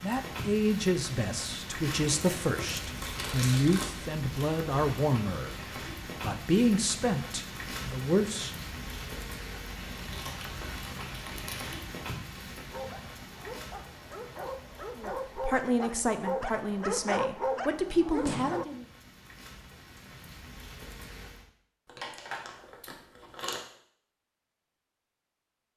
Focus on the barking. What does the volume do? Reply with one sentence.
The volume of the barking goes up.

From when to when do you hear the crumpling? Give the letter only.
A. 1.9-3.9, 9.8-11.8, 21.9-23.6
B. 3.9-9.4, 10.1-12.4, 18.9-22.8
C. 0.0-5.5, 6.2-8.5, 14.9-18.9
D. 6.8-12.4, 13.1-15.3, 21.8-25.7
A.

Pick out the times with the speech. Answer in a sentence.
The speech can be heard from 0.0 to 5.5 s, from 6.2 to 8.5 s and from 14.9 to 18.9 s.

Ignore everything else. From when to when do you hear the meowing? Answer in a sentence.
You can't hear the meowing here.